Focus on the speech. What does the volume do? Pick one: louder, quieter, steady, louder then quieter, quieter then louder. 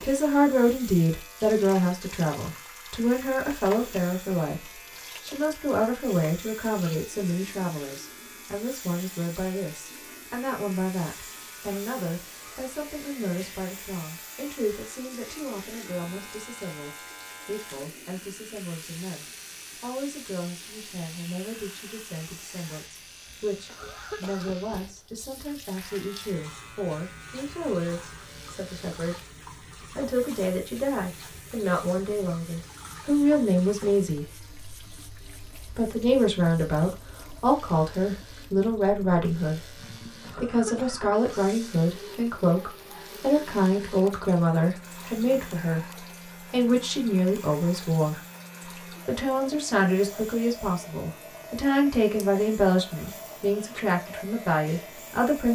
quieter then louder.